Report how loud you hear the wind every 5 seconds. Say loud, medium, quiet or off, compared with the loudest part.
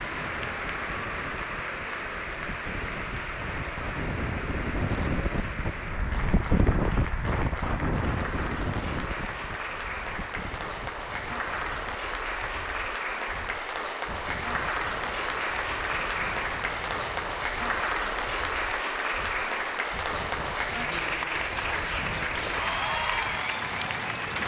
medium, loud, quiet, quiet, quiet.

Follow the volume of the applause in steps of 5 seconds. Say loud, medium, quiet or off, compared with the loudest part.
medium, medium, loud, loud, loud.